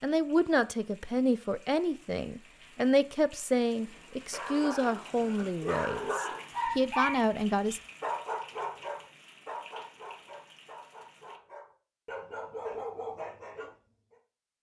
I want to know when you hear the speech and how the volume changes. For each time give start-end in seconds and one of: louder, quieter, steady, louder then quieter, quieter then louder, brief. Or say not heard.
0.0-7.8 steady.